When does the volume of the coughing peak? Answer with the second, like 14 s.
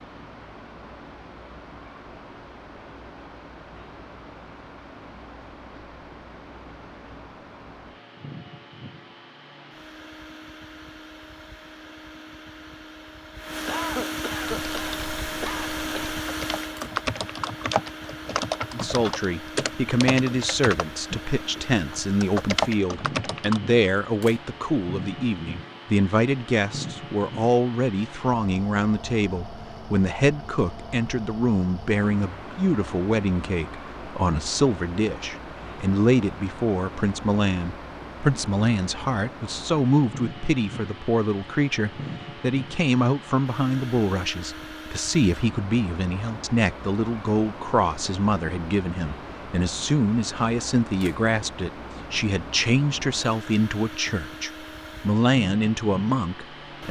14 s.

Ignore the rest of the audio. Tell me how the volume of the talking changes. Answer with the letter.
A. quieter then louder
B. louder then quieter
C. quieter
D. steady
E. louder
D.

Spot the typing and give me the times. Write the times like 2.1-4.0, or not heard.
14.4-23.6.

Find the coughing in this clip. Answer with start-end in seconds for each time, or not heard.
13.7-16.1.